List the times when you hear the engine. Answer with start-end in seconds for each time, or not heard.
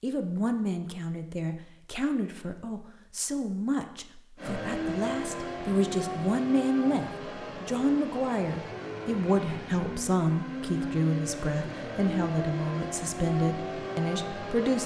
4.3-14.8.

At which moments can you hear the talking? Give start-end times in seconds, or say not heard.
0.0-14.8.